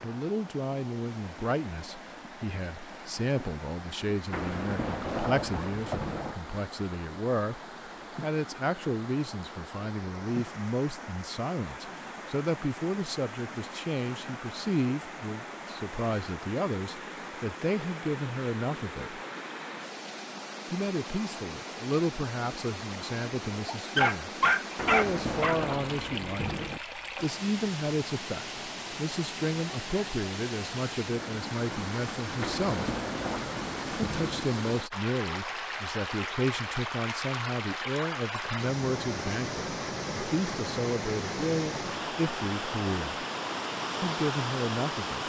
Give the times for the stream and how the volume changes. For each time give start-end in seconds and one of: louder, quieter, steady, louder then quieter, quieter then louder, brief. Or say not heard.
0.0-45.2 louder.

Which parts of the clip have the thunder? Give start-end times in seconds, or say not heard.
4.3-6.3, 24.8-26.8, 32.4-34.5.